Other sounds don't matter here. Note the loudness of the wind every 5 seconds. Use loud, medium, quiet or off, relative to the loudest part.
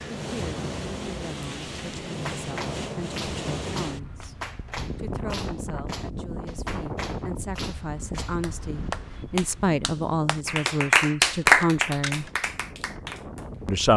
loud, loud, medium.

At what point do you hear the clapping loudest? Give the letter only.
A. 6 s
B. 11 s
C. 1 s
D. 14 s
B.